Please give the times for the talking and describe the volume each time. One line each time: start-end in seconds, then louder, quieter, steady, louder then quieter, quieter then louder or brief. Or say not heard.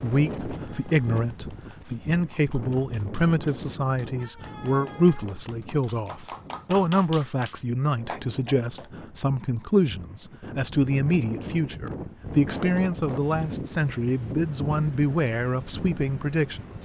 0.0-16.7 steady.